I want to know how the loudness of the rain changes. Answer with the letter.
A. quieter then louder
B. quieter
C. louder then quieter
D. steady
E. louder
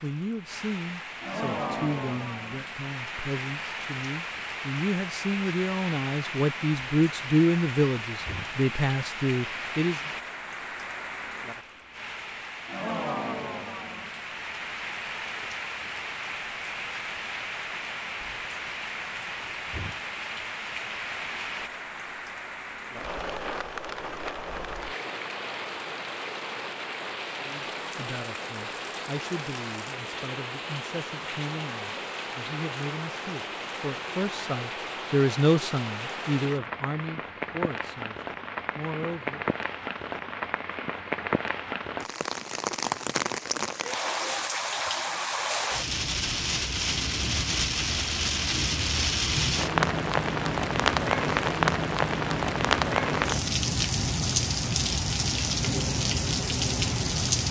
E.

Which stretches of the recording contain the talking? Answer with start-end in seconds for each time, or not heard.
0.0-10.0, 27.4-39.5.